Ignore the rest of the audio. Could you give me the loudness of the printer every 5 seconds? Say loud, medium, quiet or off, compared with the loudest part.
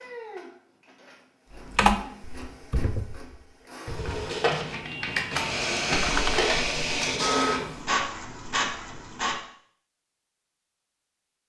medium, loud, off.